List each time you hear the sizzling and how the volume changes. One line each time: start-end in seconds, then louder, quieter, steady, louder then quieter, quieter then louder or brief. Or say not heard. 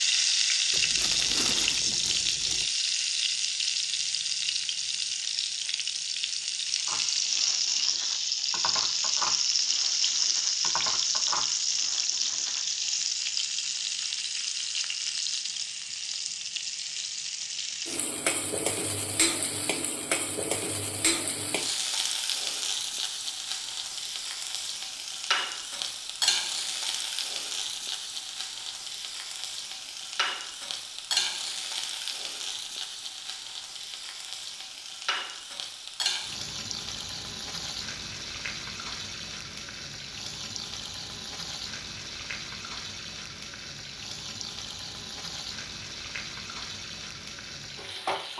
0.0-48.3 quieter.